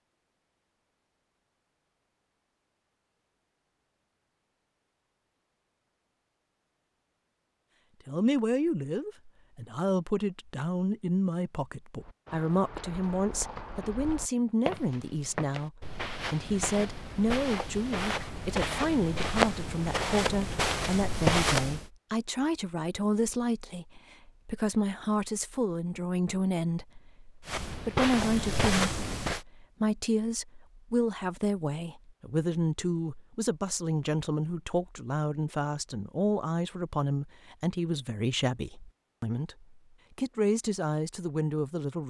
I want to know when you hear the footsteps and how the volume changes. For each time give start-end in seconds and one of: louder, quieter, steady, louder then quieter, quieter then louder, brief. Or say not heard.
12.0-21.9 louder
27.4-29.4 brief.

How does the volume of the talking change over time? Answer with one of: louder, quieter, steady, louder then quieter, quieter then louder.
steady.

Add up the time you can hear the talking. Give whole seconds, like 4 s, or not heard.
34 s.